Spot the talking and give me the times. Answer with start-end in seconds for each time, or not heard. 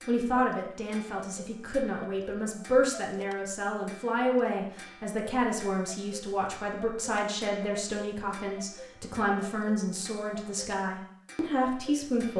0.1-12.3.